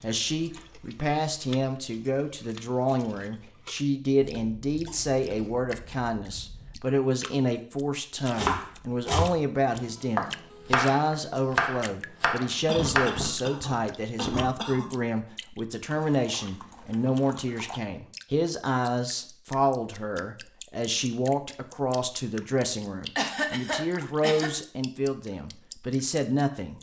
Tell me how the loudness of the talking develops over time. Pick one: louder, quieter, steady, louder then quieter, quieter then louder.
steady.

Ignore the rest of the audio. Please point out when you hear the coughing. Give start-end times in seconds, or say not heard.
4.2-6.8, 12.7-14.8, 23.1-24.5.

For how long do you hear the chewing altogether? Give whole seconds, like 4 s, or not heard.
not heard.